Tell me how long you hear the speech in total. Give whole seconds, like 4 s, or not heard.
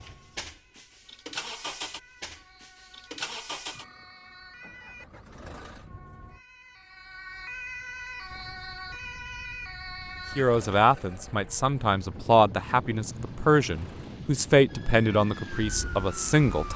6 s.